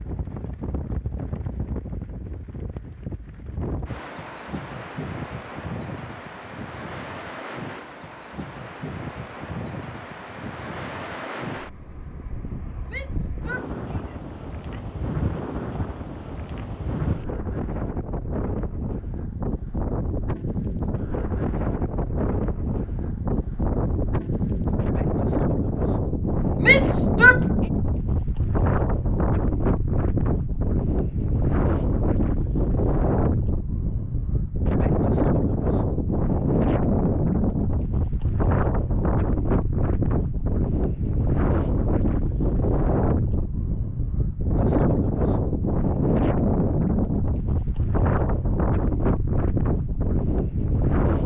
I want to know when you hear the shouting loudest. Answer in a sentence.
The loudest moment of the shouting is at 27 seconds.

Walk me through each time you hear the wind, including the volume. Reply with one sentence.
The wind can be heard from 0.0 to 51.2 s, getting louder.